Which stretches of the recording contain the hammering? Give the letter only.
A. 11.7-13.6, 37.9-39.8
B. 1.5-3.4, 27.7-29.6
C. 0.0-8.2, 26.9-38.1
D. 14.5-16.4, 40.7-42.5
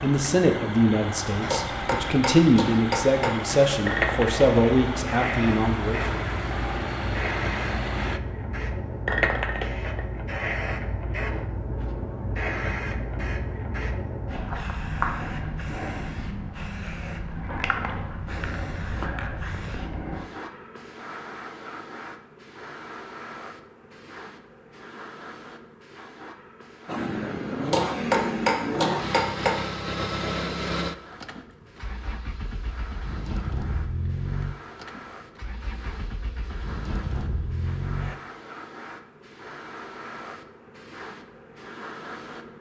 B.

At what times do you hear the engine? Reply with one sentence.
The engine can be heard from 0.0 to 8.2 s and from 26.9 to 38.1 s.